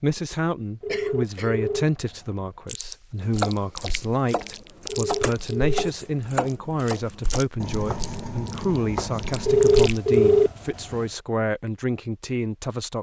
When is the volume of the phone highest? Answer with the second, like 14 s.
10 s.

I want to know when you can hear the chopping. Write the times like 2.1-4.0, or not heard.
3.3-9.9.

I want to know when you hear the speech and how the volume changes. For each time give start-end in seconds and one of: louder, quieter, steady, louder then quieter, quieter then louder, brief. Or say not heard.
0.0-12.9 steady.